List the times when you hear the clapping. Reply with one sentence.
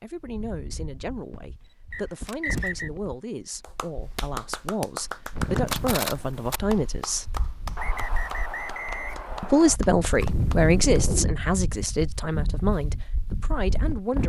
You can hear the clapping from 3.6 to 11.0 s.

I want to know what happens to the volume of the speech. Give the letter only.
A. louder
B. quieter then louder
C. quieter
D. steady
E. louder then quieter
E.